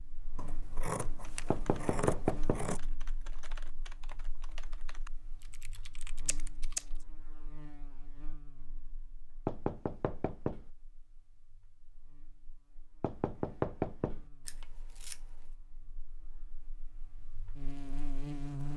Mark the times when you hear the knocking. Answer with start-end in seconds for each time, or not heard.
1.5-2.6, 9.4-10.7, 13.0-14.2.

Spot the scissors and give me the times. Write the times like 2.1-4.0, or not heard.
0.3-2.8, 6.2-6.8, 14.4-15.2.